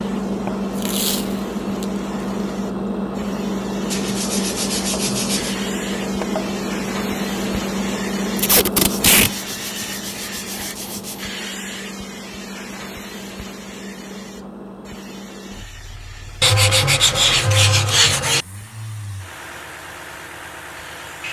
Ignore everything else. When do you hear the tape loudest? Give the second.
9 s.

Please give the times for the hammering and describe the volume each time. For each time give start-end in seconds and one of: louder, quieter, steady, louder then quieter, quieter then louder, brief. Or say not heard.
not heard.